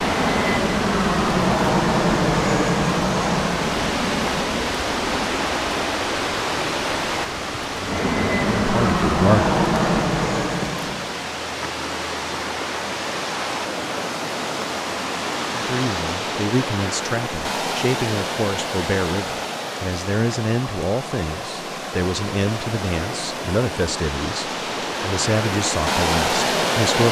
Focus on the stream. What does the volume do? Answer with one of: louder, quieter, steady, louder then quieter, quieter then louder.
steady.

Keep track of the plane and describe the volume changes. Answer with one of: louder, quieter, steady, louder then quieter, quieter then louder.
quieter then louder.